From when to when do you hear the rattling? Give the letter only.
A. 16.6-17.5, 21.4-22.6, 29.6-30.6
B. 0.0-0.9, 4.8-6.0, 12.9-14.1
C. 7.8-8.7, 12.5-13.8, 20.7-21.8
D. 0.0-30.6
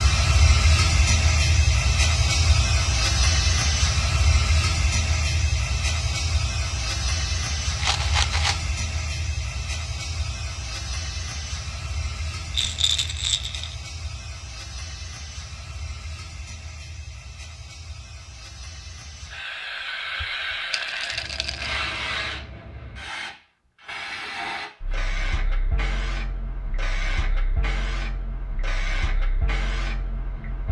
C.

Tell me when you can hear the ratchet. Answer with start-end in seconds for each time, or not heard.
not heard.